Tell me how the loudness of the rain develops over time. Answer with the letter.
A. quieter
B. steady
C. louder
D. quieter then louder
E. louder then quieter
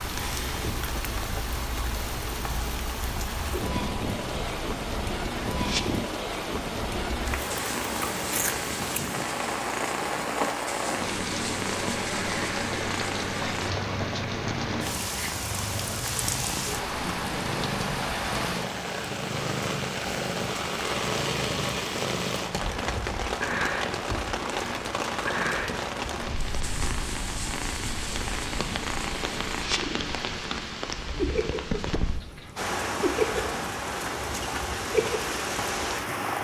B.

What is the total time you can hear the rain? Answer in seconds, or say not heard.
36 s.